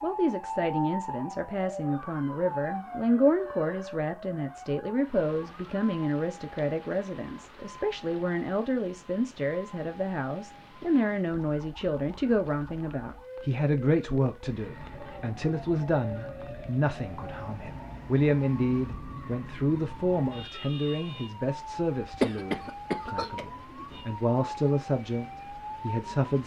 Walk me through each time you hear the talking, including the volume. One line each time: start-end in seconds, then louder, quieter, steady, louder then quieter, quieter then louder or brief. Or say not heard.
0.0-26.4 steady.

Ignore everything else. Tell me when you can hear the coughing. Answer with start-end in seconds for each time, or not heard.
22.2-23.4.